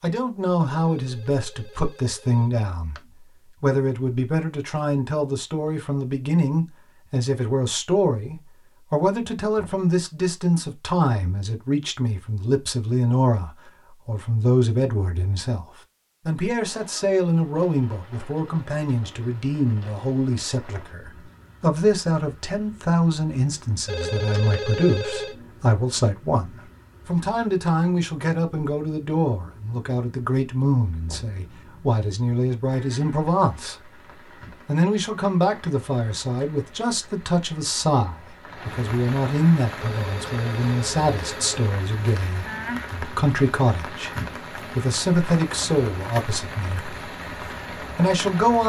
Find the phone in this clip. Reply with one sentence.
The phone can be heard from 0.7 to 3.0 s, from 23.9 to 25.4 s and from 39.8 to 42.2 s.